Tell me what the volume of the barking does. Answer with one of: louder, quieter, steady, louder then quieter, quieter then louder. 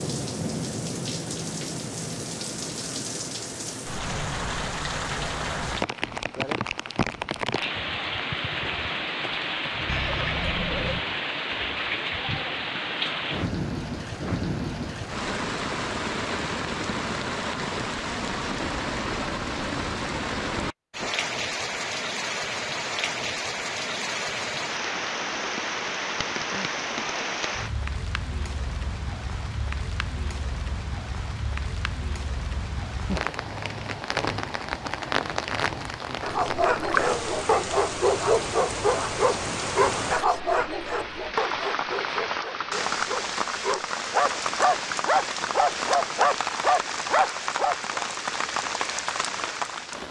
quieter then louder.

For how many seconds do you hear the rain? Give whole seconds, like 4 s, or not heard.
50 s.